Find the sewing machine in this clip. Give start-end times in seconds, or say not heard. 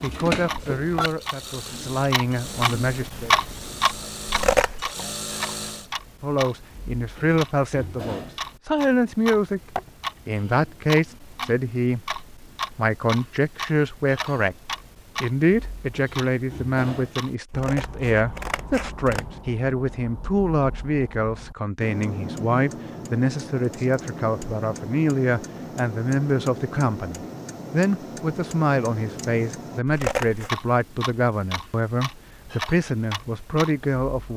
0.0-5.9.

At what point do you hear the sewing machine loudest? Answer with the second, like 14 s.
1 s.